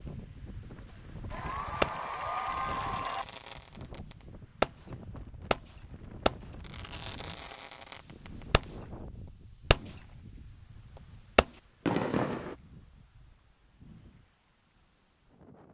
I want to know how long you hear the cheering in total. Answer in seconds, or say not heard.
2 s.